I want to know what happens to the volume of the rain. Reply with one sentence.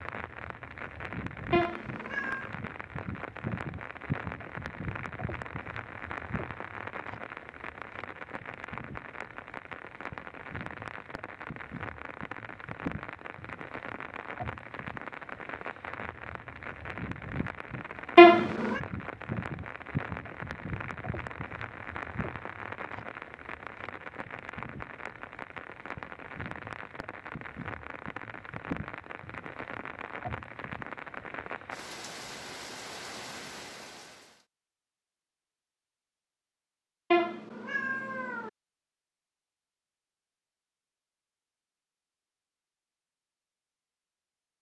The loudness of the rain stays about the same.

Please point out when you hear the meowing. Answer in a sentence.
You can hear the meowing from 1.5 to 2.5 s, from 18.1 to 18.8 s and from 37.1 to 38.5 s.